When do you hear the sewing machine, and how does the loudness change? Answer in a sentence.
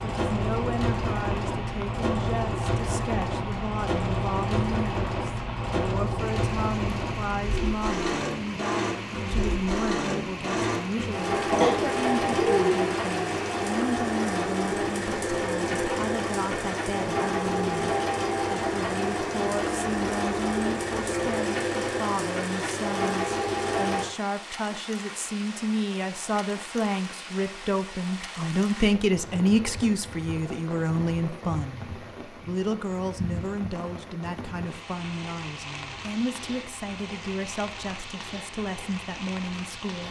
You can hear the sewing machine from 0.0 to 24.1 s, at a steady volume.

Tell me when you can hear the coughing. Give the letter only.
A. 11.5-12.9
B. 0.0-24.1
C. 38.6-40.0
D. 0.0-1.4
A.